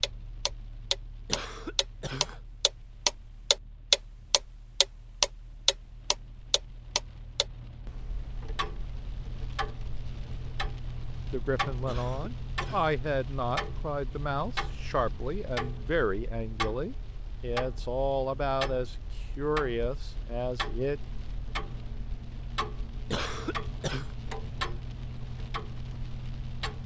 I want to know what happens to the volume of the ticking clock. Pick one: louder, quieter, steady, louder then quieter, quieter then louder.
quieter.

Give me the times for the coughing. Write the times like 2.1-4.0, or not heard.
1.2-2.4, 11.8-12.9, 23.1-24.1.